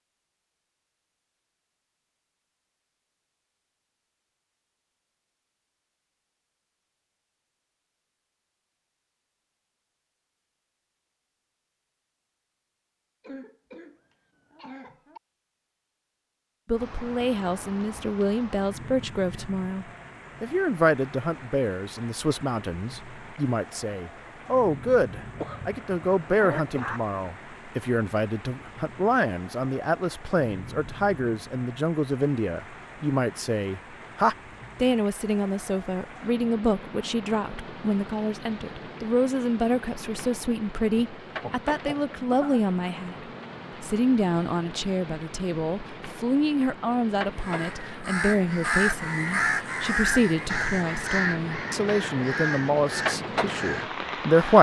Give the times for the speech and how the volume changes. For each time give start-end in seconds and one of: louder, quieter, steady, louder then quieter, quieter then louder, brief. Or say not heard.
16.6-43.1 steady
43.8-54.5 steady.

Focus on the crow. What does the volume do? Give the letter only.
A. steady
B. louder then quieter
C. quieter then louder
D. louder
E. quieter
E.